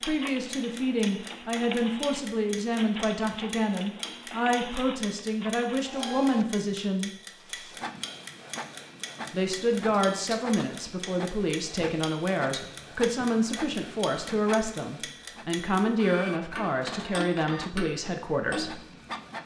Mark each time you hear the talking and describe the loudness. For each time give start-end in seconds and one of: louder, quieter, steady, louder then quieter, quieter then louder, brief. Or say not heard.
0.0-7.1 steady
9.3-18.9 steady.